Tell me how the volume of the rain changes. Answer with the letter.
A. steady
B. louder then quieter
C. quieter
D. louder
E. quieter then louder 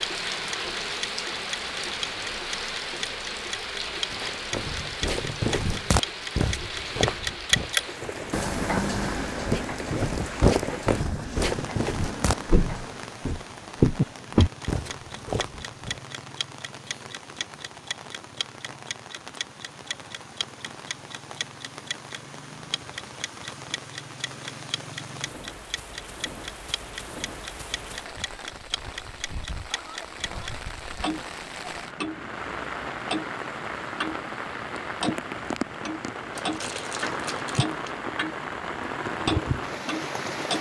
E.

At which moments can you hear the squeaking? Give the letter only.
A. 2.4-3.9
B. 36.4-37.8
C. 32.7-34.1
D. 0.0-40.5
B.